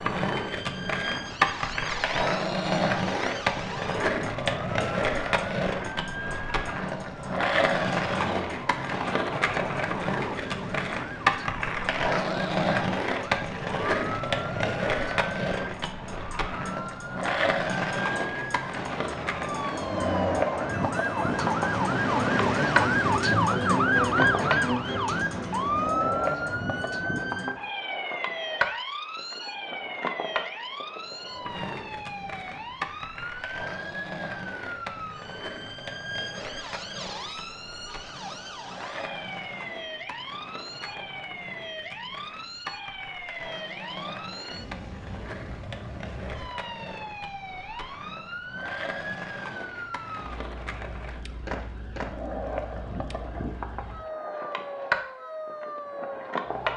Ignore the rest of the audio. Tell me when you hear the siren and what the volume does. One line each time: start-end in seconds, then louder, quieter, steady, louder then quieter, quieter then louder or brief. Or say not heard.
0.0-56.7 louder then quieter.